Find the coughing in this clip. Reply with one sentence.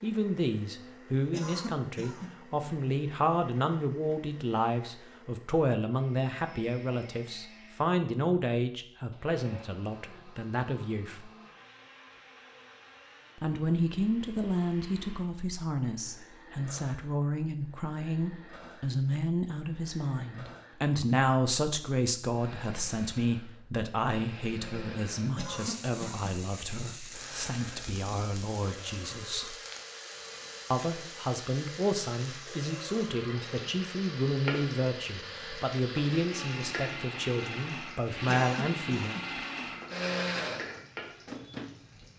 The coughing can be heard from 1.3 to 2.5 s, from 25.4 to 26.3 s and from 38.2 to 39.4 s.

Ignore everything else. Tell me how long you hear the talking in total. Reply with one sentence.
You can hear the talking for 36 seconds altogether.